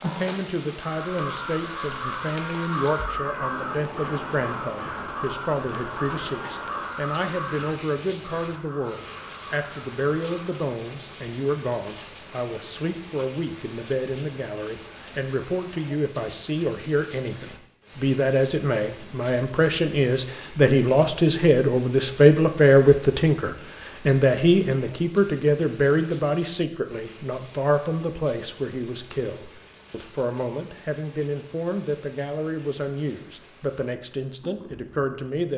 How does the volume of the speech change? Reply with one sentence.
The loudness of the speech goes up, then down.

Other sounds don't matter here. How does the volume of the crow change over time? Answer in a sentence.
The volume of the crow goes down.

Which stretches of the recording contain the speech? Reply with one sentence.
The speech can be heard from 0.0 to 35.5 s.